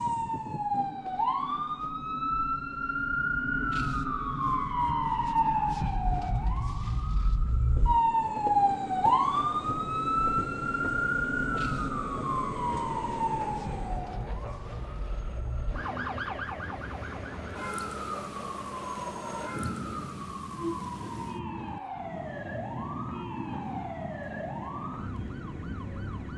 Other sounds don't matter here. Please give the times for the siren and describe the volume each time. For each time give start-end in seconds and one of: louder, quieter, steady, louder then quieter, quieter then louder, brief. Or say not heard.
0.0-26.3 quieter.